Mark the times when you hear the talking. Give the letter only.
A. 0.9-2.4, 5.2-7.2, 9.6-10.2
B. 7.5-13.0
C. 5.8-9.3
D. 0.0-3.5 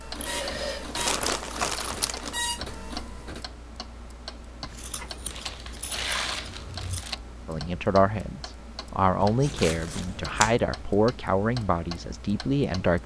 B.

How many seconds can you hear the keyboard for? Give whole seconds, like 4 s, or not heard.
not heard.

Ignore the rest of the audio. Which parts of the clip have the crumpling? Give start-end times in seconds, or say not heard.
0.9-2.4, 5.2-7.2, 9.6-10.2.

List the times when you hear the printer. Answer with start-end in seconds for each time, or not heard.
0.0-3.5.